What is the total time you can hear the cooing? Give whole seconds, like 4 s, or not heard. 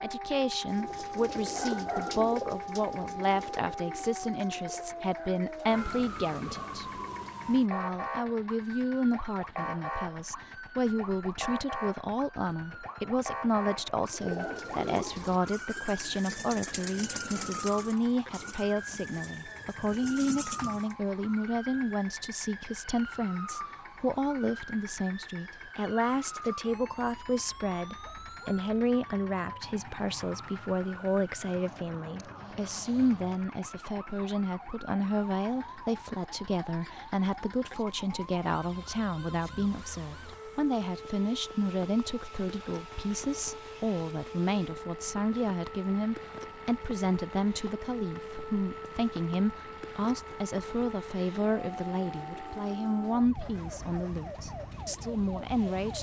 14 s.